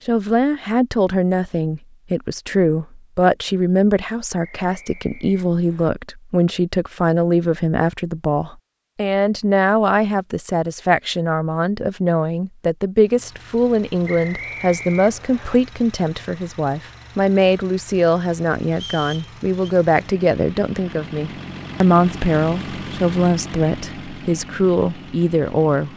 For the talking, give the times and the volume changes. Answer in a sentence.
The talking can be heard from 0.1 to 25.9 s, at a steady volume.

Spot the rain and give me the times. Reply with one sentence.
You can't hear the rain here.